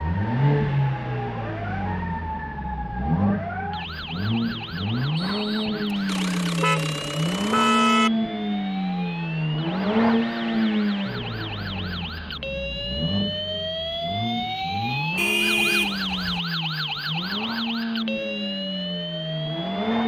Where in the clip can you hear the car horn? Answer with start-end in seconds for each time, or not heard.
6.0-8.1, 15.2-16.4.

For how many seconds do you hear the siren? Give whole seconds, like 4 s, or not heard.
20 s.